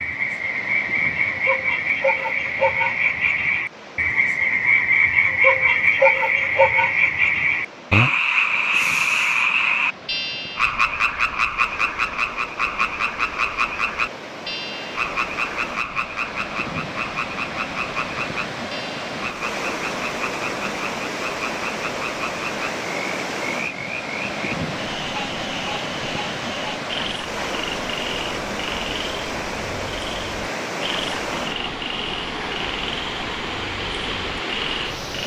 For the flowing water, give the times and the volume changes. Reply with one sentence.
The flowing water can be heard from 0.0 to 35.2 s, getting louder.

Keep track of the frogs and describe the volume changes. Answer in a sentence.
The volume of the frogs goes down.